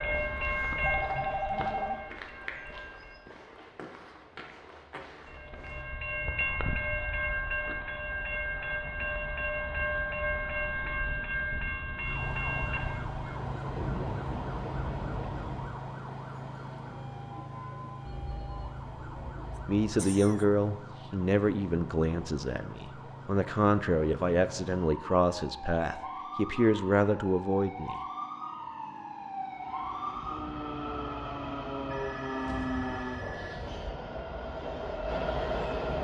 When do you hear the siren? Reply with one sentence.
The siren can be heard from 11.9 to 33.2 s.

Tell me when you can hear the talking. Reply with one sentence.
You can hear the talking from 19.6 to 28.0 s.